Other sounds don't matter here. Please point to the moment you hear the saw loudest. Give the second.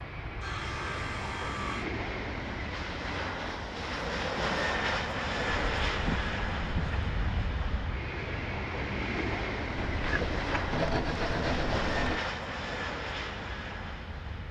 11 s.